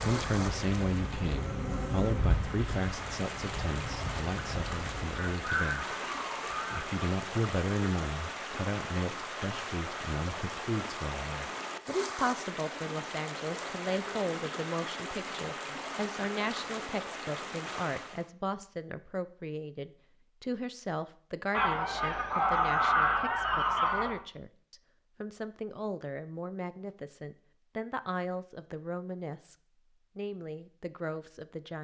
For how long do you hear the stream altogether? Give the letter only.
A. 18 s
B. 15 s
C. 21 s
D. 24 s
A.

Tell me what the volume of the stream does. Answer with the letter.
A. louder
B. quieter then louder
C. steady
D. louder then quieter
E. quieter
C.